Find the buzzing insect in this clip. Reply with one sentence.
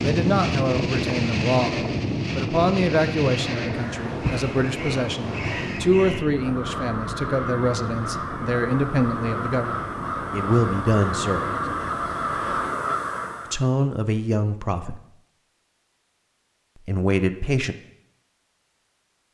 The buzzing insect can't be heard in this clip.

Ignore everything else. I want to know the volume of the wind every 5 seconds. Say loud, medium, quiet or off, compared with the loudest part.
loud, medium, quiet, off.